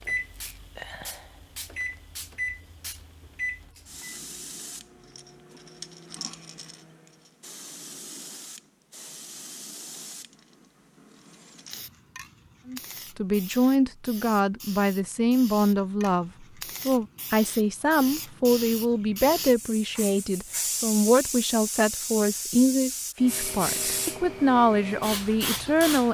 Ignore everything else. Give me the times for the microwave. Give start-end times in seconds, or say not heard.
0.0-7.4.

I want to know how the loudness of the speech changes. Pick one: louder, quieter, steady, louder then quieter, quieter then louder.
steady.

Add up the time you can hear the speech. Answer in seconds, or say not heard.
13 s.